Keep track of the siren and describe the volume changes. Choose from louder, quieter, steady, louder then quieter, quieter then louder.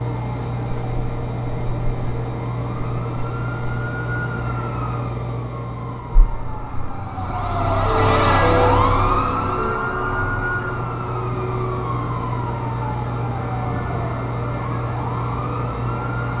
louder then quieter.